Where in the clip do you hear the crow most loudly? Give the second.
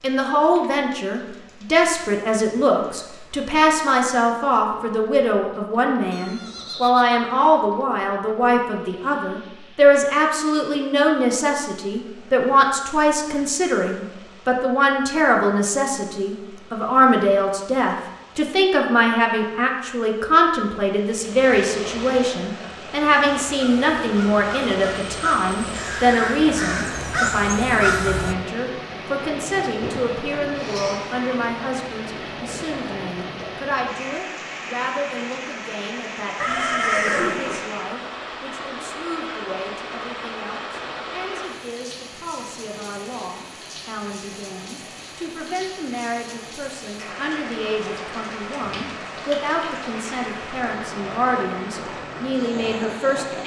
28 s.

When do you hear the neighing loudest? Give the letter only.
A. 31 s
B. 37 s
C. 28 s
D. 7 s
B.